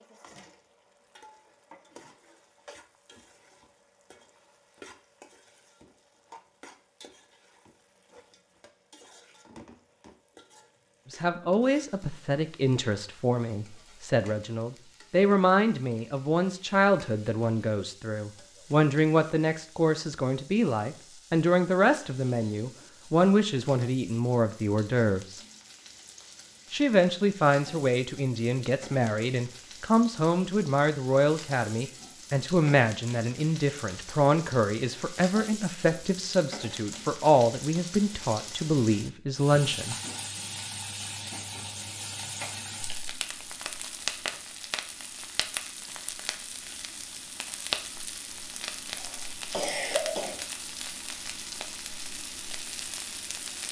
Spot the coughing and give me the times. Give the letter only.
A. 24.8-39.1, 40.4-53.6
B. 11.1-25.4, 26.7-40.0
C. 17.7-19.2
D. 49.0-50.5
D.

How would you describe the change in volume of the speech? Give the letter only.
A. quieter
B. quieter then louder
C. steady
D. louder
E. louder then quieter
C.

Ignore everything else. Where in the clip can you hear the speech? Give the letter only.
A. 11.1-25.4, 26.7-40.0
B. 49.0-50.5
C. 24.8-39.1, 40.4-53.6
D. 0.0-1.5
A.